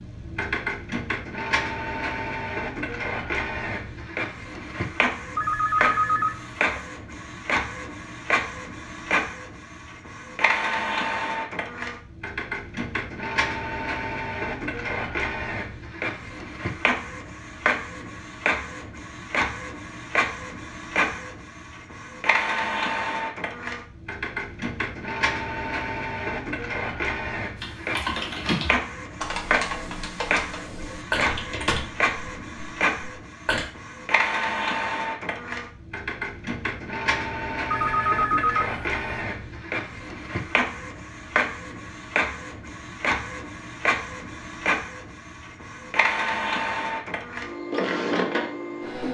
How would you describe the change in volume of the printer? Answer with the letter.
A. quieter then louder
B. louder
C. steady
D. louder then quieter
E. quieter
C.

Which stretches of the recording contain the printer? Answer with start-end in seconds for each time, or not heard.
0.0-49.0.